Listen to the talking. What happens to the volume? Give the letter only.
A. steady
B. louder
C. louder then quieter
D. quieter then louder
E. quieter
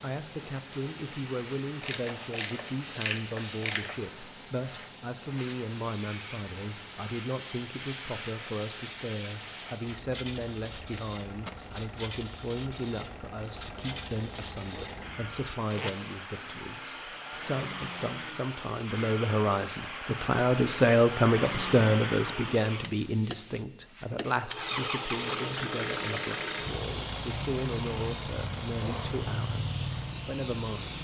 C.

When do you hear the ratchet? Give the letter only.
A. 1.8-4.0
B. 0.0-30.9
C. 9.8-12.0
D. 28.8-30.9
A.